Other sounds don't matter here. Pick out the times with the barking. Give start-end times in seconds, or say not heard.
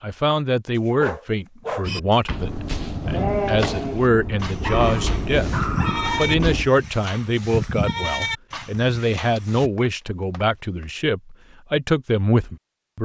0.8-2.1, 4.6-6.4, 9.3-10.8.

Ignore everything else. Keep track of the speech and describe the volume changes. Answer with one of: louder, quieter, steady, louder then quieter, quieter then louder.
steady.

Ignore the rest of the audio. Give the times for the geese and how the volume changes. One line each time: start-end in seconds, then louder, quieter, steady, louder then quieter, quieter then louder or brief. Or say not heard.
not heard.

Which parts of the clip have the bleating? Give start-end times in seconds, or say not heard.
1.8-9.7.